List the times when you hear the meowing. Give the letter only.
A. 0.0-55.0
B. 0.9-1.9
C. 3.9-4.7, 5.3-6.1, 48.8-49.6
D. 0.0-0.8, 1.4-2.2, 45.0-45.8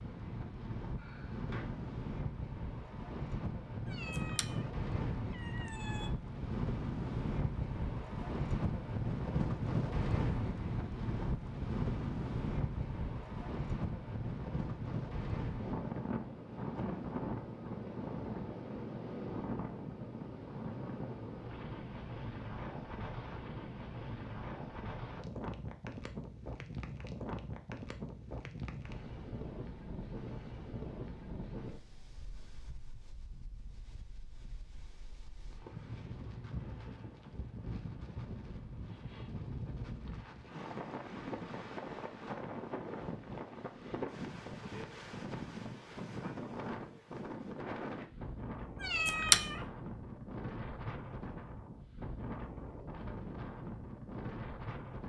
C.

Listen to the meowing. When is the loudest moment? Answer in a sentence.
The loudest moment of the meowing is at 49 seconds.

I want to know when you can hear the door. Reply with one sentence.
You can hear the door from 0.9 to 1.9 s.